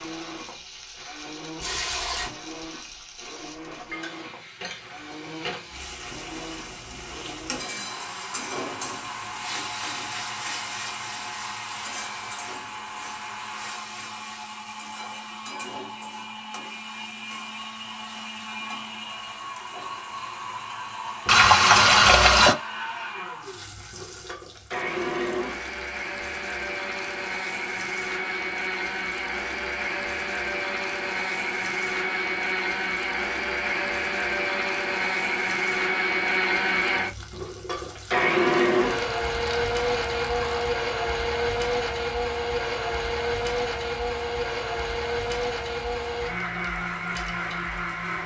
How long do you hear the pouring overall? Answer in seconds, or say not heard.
4 s.